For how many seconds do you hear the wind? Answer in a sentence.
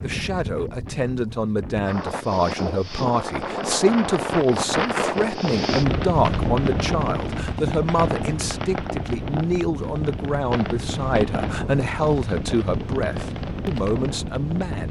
You can hear the wind for 15 seconds altogether.